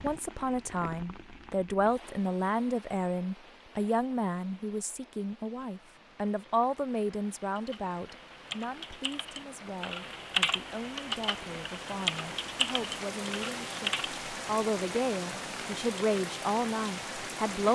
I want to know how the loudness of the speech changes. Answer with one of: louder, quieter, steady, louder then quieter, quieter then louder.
quieter then louder.